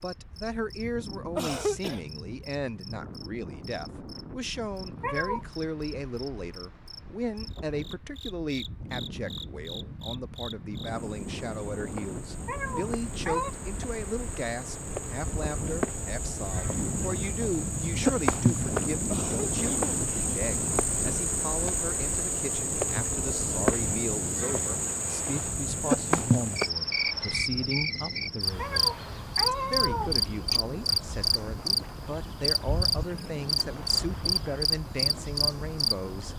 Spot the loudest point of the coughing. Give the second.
2 s.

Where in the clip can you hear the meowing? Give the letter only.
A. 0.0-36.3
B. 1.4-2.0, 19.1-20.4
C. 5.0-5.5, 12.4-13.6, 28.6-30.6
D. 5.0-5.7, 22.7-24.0
C.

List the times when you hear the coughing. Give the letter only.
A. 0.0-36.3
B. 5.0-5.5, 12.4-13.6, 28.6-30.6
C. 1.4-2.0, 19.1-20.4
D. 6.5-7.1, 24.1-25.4
C.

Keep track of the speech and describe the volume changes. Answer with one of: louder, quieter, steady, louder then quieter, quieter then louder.
steady.